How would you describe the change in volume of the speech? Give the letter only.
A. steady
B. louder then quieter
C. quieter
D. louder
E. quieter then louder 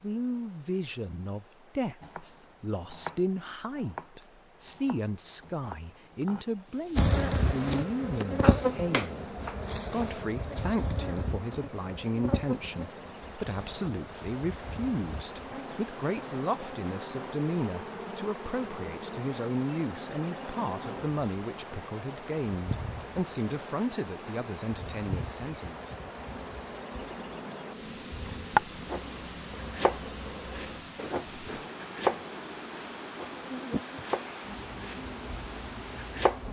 A.